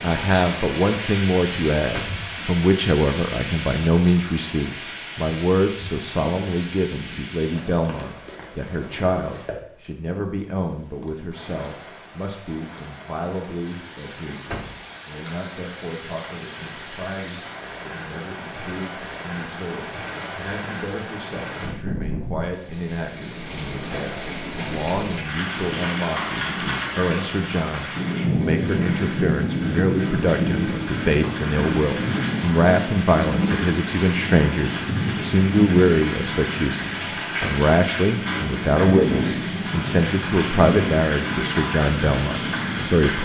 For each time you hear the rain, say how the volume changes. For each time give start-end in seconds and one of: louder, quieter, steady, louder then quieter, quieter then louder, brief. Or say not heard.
0.0-43.2 quieter then louder.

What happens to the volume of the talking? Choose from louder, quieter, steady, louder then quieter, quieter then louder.
quieter then louder.